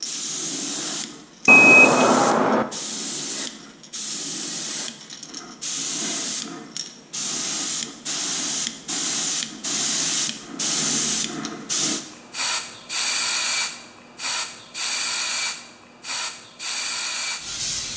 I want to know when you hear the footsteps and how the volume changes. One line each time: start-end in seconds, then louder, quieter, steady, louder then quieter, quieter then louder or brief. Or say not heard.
not heard.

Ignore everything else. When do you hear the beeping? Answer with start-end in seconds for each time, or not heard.
1.4-2.6.